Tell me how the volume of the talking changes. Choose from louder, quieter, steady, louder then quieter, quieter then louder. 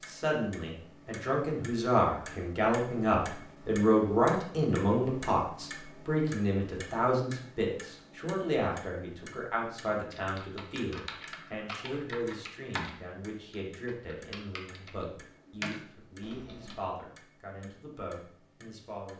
quieter.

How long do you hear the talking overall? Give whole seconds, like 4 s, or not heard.
19 s.